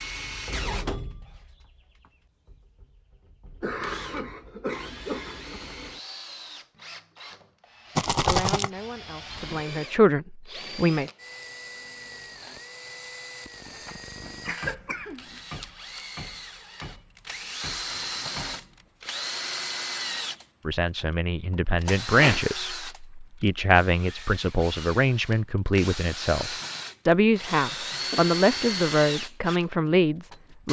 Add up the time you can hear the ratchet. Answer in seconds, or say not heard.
not heard.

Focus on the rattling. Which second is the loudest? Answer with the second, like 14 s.
8 s.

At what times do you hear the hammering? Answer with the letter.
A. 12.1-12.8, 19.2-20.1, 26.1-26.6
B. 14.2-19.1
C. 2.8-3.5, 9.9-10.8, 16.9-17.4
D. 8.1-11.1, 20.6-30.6
B.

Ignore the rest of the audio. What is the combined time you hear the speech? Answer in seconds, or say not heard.
13 s.